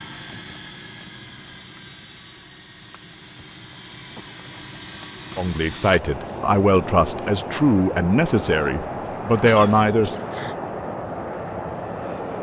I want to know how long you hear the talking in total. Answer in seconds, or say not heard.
5 s.